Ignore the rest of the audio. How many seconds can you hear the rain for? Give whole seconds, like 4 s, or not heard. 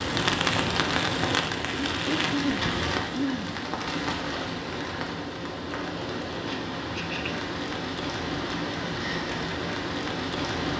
11 s.